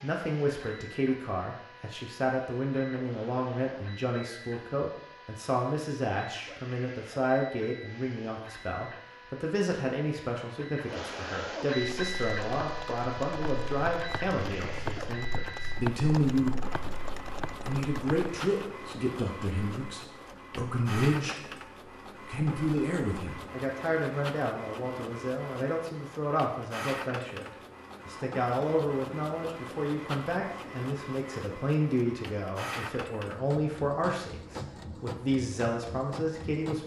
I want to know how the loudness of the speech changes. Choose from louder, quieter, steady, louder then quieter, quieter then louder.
steady.